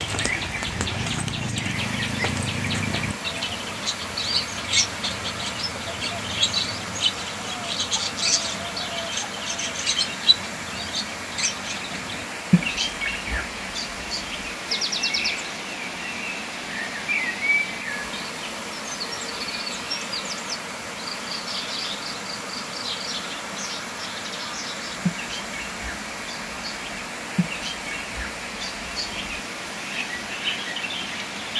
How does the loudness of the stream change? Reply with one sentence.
The volume of the stream stays about the same.